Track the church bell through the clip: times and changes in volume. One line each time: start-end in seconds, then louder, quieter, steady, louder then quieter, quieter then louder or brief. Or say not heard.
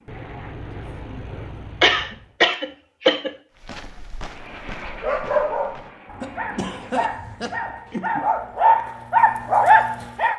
not heard.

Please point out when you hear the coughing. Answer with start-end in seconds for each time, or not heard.
1.8-3.4, 6.2-8.2.